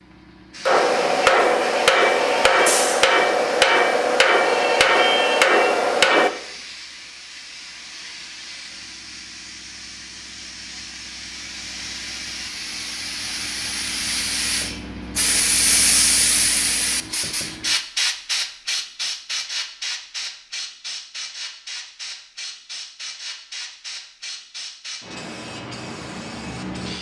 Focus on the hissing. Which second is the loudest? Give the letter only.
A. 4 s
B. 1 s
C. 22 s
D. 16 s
D.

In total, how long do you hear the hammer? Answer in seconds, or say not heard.
6 s.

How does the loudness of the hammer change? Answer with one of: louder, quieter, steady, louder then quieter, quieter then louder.
steady.